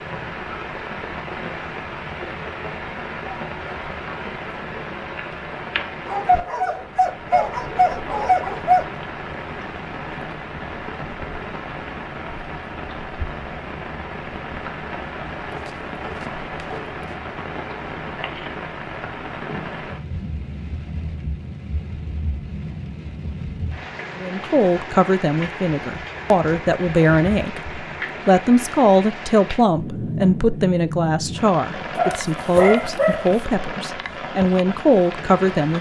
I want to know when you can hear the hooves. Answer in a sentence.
The hooves can't be heard in this clip.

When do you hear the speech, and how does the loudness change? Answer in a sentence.
The speech can be heard from 24.2 to 35.7 s, at a steady volume.